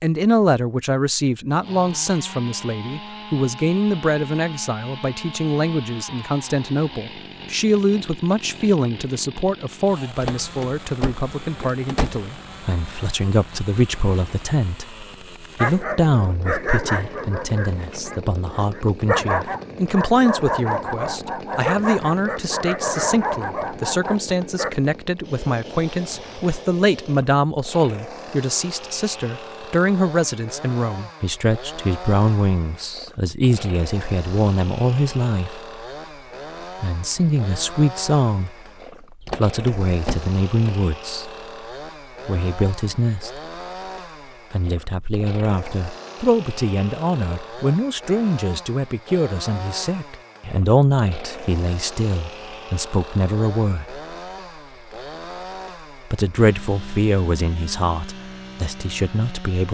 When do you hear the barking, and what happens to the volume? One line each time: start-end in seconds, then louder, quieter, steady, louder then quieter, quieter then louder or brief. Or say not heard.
15.6-24.8 steady.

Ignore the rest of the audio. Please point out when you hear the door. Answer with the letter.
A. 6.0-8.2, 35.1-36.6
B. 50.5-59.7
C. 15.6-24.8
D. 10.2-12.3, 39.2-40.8
D.